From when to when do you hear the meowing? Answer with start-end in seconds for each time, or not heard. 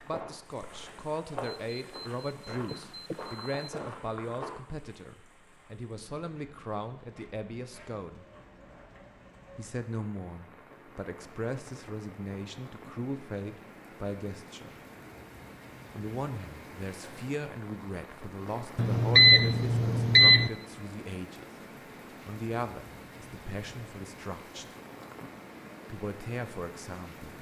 not heard.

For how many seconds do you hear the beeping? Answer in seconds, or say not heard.
4 s.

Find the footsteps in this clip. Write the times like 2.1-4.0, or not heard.
0.0-4.5.